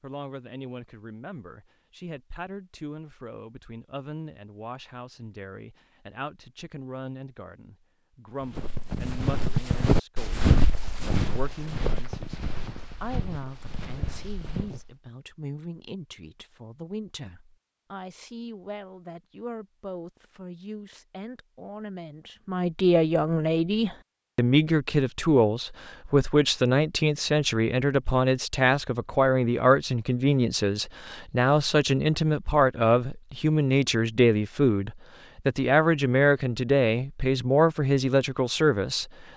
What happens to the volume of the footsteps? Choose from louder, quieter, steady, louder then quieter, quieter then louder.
quieter.